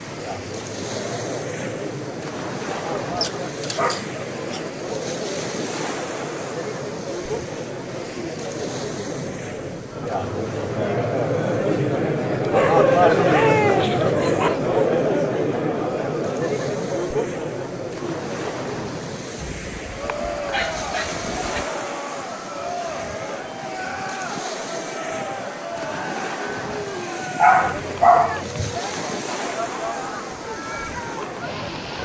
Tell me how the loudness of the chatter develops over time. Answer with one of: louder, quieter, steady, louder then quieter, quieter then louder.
louder then quieter.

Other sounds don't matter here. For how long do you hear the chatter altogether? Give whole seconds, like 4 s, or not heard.
32 s.